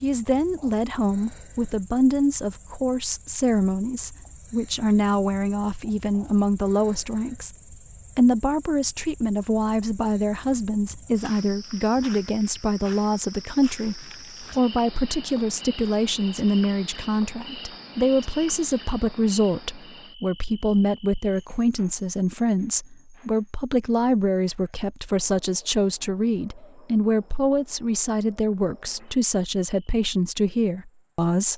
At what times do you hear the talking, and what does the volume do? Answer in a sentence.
You can hear the talking from 0.0 to 7.5 s, at a steady volume; and from 8.2 to 31.5 s, at a steady volume.